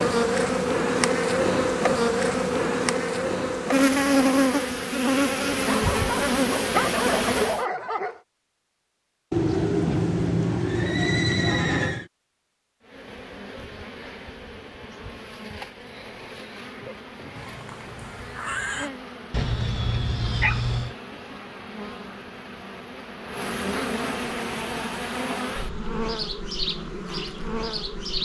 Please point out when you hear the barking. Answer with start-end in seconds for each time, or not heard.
5.6-8.2, 19.3-20.9.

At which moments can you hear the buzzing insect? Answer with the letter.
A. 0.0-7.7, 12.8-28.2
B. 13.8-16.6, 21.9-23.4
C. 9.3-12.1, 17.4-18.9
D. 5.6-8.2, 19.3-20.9
A.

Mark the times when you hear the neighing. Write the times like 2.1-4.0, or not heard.
9.3-12.1, 17.4-18.9.